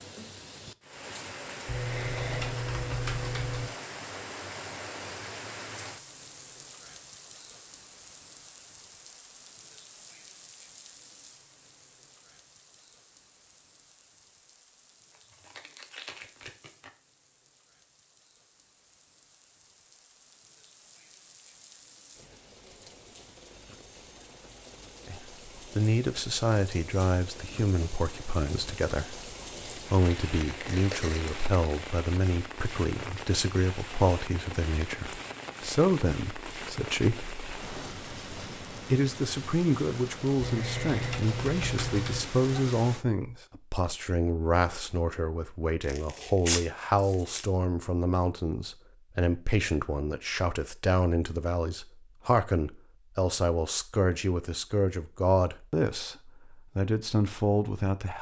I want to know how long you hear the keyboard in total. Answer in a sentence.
The keyboard can be heard for 4 seconds in total.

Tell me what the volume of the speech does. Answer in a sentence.
The loudness of the speech stays about the same.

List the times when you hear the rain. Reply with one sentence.
The rain can be heard from 0.0 to 43.0 s.